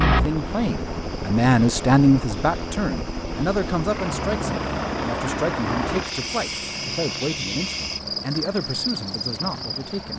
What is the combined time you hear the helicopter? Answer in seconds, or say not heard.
10 s.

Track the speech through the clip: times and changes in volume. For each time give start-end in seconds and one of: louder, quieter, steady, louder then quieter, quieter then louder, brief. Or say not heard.
0.0-10.1 quieter.